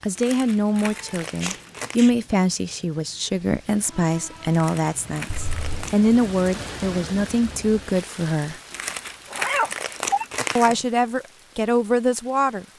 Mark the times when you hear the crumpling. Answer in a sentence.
You can hear the crumpling from 0.1 to 2.0 s, from 4.5 to 6.0 s and from 8.7 to 10.8 s.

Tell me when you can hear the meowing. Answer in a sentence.
The meowing can be heard from 0.9 to 2.1 s, from 5.3 to 5.8 s and from 9.3 to 10.8 s.